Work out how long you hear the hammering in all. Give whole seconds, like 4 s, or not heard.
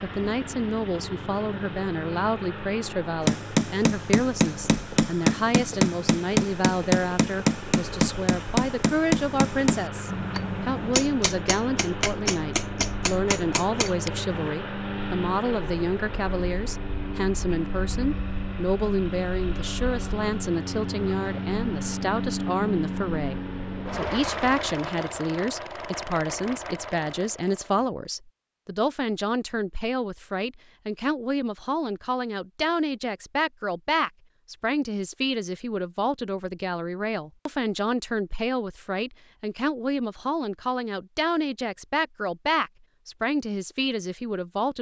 11 s.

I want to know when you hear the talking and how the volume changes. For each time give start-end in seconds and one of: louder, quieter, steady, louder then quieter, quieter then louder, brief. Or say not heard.
0.0-44.7 steady.